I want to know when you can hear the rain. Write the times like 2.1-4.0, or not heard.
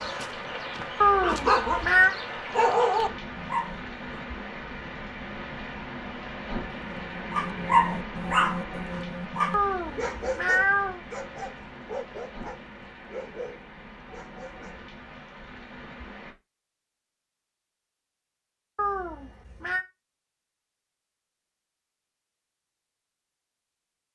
0.0-16.4.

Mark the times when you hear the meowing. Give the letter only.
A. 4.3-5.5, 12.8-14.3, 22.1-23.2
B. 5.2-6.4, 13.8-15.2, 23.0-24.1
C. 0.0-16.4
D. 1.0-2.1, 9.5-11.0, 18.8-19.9
D.